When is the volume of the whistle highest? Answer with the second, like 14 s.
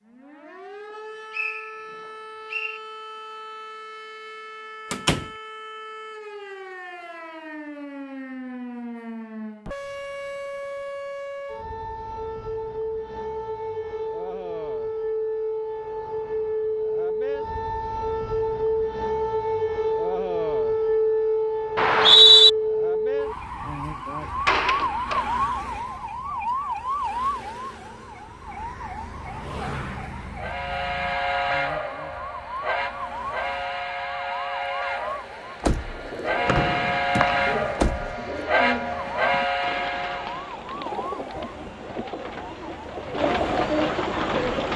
22 s.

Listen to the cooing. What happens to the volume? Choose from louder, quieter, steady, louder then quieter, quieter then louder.
louder.